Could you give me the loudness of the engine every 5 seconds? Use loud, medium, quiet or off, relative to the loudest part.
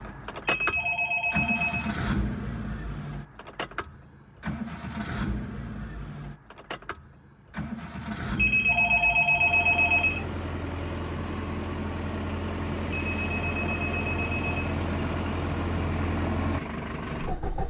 loud, medium, loud, loud.